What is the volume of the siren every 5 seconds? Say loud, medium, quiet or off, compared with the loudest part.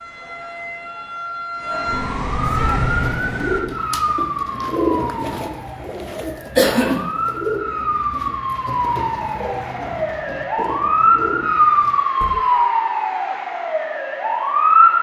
medium, medium, loud.